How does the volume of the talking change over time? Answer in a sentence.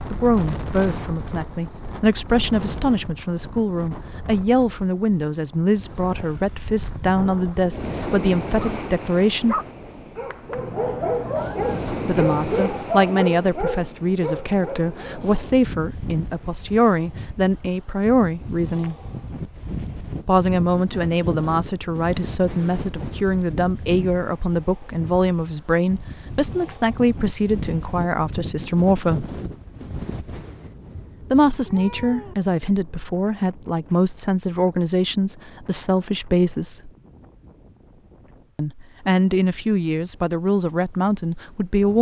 The volume of the talking stays about the same.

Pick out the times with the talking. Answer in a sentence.
You can hear the talking from 0.1 to 9.6 s, from 12.1 to 18.9 s, from 20.2 to 29.2 s, from 31.3 to 36.9 s and from 38.5 to 41.9 s.